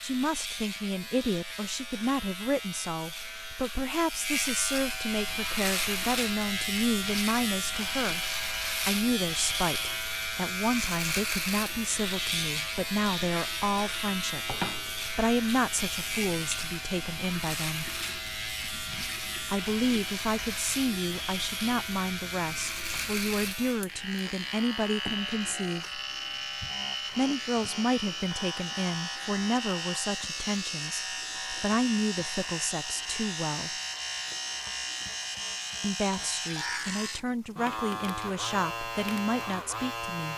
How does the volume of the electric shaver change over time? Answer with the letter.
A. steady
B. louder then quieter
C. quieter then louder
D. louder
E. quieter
A.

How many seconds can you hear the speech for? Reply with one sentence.
The speech can be heard for 35 seconds in total.